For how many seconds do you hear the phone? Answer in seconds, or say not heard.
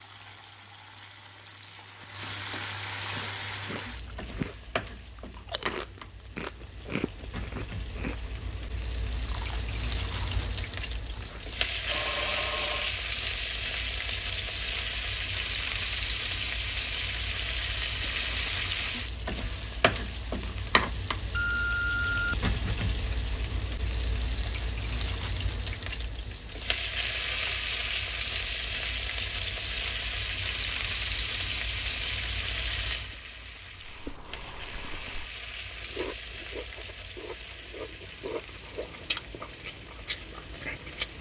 2 s.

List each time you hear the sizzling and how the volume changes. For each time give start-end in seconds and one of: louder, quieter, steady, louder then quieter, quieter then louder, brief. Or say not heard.
0.0-41.1 louder then quieter.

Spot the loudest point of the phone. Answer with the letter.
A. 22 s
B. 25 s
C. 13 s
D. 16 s
A.